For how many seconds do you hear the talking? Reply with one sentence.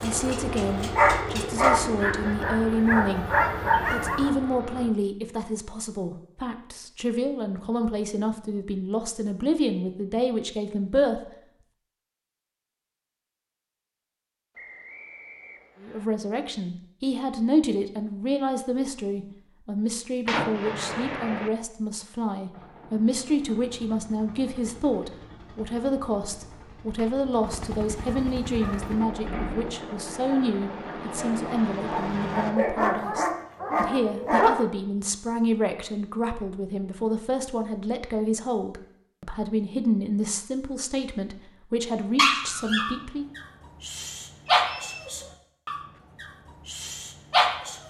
The talking can be heard for 39 seconds in total.